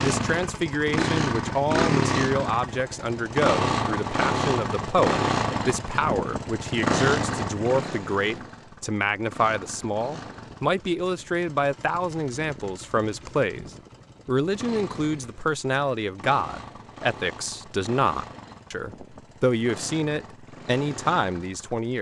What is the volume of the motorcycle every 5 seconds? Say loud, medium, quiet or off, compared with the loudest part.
loud, loud, quiet, quiet, quiet.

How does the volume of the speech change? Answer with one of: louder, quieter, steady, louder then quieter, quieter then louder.
steady.